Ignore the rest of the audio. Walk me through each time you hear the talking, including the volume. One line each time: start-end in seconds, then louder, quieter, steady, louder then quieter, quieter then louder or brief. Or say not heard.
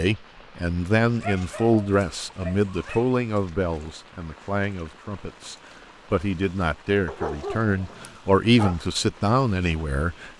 0.0-10.3 quieter then louder.